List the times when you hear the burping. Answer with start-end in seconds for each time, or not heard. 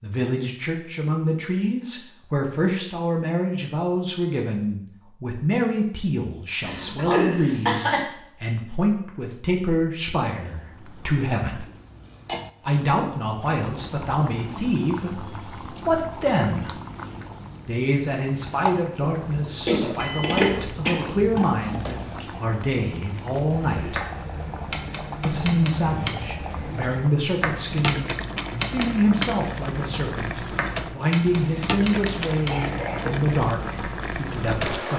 not heard.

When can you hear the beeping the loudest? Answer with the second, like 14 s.
20 s.